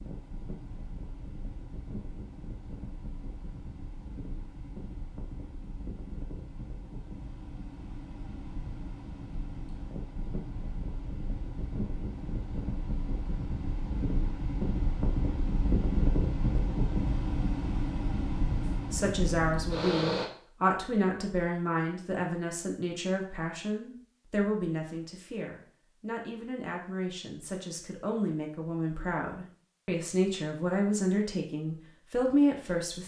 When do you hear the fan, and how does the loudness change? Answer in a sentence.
The fan can be heard from 0.0 to 20.3 s, getting louder.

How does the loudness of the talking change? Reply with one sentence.
The volume of the talking goes down, then up.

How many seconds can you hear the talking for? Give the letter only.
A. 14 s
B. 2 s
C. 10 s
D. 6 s
A.